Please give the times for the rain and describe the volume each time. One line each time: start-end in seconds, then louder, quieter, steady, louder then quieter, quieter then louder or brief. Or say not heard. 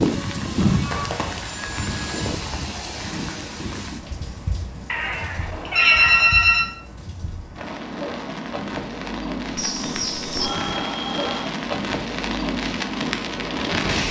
0.0-14.0 quieter then louder.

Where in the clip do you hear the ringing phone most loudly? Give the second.
6 s.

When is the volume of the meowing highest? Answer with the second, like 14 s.
6 s.